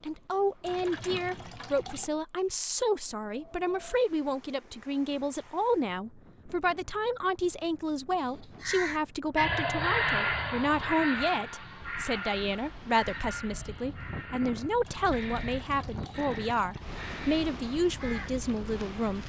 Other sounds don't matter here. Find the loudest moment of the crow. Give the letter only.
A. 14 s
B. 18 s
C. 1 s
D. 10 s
D.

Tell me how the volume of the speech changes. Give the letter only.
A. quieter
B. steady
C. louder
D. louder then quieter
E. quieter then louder
B.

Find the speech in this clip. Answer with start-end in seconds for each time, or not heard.
0.0-19.2.